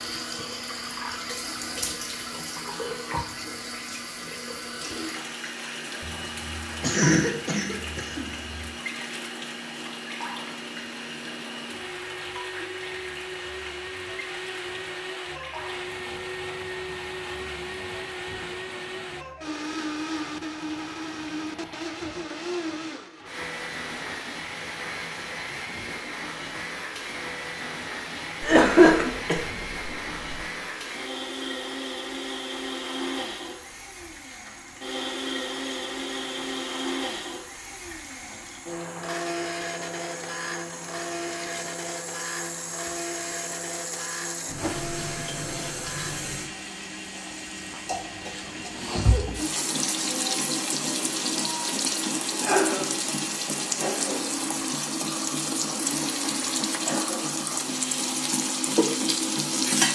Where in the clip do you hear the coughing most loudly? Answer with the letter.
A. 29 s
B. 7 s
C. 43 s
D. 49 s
A.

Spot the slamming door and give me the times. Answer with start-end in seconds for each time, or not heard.
not heard.